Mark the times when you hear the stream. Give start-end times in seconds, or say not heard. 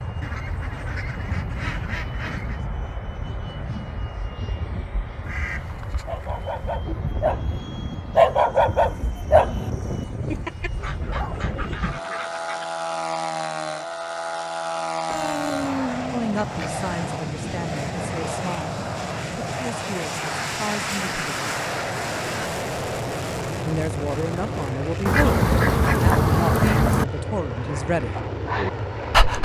not heard.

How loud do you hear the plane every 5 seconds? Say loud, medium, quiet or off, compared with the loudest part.
medium, medium, loud, loud, loud, loud.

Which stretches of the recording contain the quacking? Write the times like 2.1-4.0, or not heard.
0.2-2.6, 5.2-6.8, 10.8-12.7, 15.1-16.7, 20.2-22.5, 25.1-27.1.